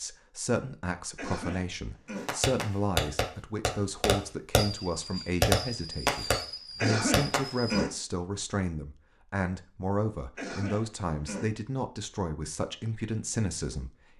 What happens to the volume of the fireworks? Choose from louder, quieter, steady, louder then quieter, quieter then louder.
quieter.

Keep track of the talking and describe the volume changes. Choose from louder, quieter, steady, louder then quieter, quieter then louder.
steady.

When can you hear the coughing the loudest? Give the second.
7 s.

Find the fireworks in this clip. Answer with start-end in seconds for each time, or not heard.
2.2-7.8.